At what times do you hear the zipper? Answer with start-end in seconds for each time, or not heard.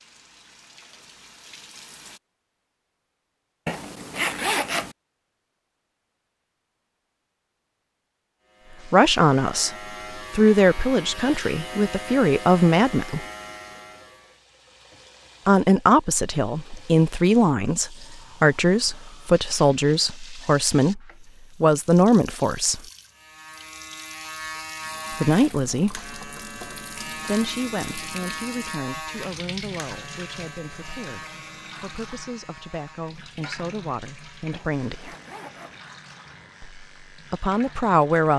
3.6-5.0, 34.5-35.8.